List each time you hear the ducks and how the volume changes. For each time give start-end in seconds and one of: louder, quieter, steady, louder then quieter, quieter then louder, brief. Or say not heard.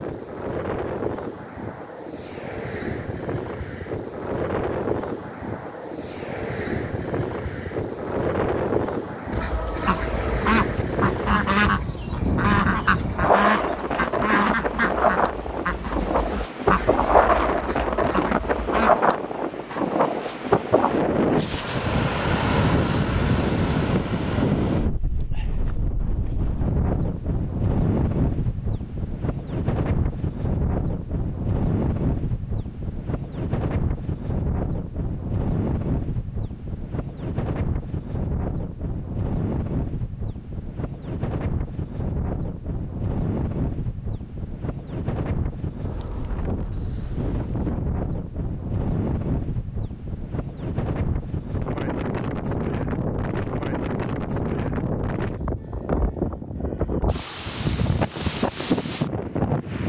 9.3-19.0 quieter.